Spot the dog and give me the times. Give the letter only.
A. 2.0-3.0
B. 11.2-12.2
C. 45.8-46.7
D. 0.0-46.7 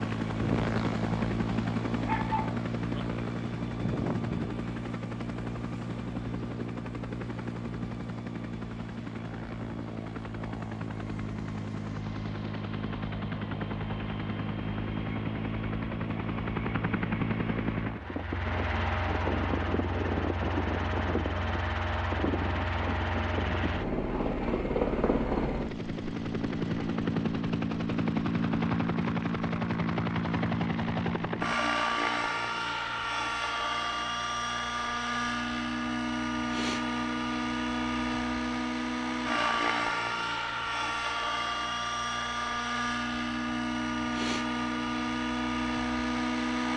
A.